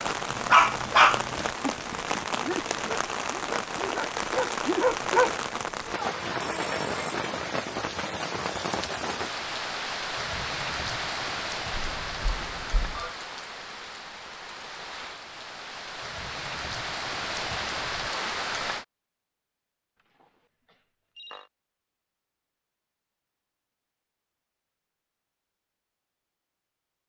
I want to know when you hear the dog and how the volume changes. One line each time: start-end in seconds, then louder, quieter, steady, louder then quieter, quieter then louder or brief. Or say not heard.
0.3-5.3 quieter then louder.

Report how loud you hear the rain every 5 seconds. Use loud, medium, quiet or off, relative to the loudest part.
loud, loud, loud, loud, off, off.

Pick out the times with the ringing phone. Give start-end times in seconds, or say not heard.
6.4-7.0, 11.7-13.2, 20.2-21.5.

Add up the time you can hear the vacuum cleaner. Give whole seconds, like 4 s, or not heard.
not heard.